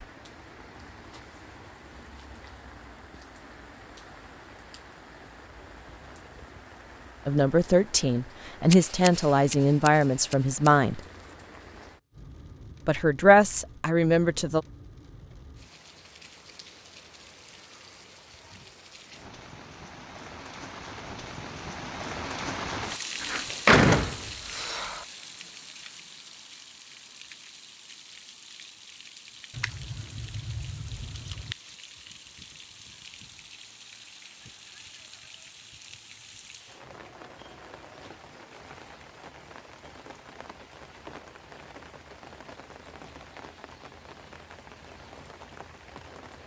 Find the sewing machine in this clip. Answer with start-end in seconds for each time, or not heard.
not heard.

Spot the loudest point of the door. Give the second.
24 s.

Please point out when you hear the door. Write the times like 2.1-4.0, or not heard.
23.2-25.1.